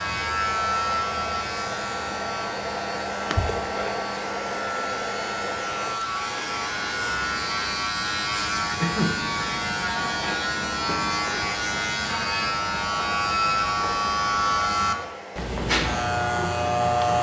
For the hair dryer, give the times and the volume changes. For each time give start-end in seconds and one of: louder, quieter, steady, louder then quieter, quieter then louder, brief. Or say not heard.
0.0-17.1 quieter.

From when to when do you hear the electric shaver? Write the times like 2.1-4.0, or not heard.
0.0-17.1.